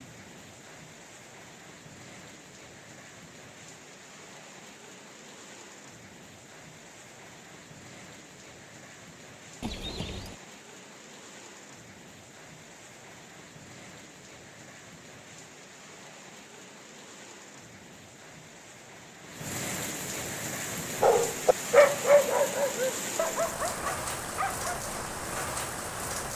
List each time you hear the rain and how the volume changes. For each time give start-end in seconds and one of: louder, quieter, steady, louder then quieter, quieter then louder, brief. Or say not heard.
0.0-26.3 louder.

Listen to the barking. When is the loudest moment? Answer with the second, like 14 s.
22 s.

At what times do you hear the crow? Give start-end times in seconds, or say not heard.
not heard.